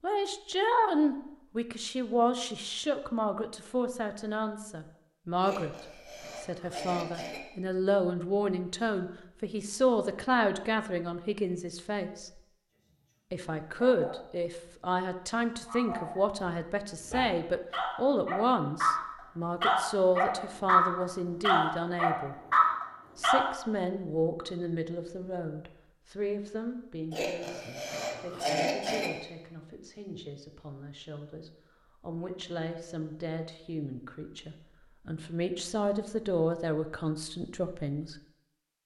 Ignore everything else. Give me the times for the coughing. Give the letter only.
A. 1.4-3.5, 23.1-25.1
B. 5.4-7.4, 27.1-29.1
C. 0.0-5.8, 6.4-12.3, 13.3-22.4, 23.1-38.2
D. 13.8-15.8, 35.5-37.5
B.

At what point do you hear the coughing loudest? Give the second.
29 s.